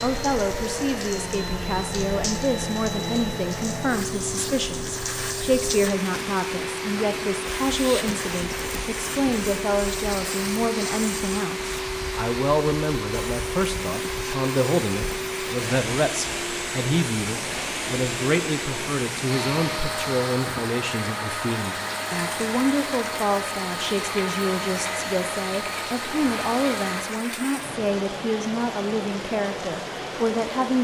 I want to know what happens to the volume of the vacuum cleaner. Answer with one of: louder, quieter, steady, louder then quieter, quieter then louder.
steady.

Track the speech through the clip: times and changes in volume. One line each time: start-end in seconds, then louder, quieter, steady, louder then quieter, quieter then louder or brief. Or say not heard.
0.0-30.7 steady.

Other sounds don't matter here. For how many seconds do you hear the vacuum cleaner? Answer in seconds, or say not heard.
27 s.